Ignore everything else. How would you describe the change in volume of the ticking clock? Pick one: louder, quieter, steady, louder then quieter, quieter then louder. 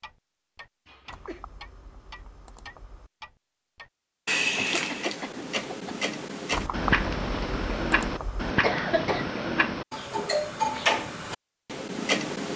louder.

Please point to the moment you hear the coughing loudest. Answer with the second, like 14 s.
9 s.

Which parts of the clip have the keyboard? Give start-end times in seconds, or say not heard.
1.1-3.1, 6.5-8.6.